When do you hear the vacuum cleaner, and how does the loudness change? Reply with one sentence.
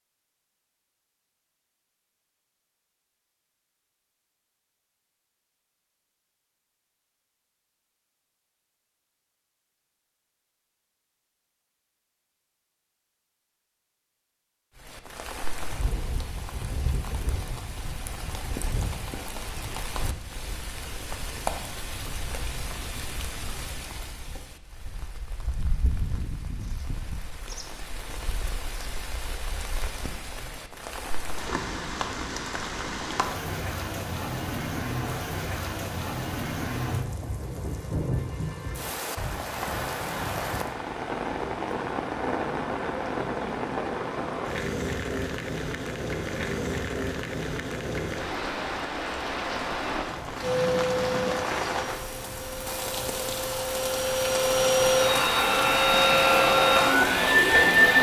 You can hear the vacuum cleaner from 50.4 to 57.9 s, getting quieter then louder.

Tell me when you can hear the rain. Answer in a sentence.
You can hear the rain from 14.8 to 57.9 s.